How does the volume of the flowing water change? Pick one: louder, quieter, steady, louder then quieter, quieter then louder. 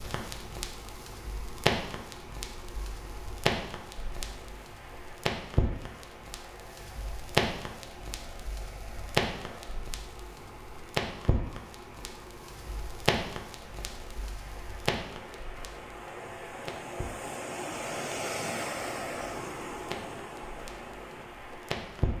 louder.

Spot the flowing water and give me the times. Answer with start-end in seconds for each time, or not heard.
0.0-22.1.